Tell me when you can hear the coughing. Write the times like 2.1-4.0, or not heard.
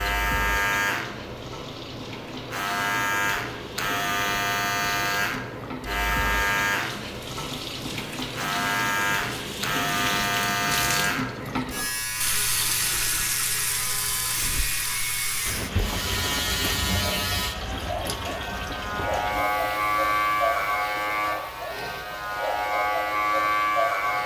not heard.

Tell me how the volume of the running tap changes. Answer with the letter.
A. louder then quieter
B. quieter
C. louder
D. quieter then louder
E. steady
A.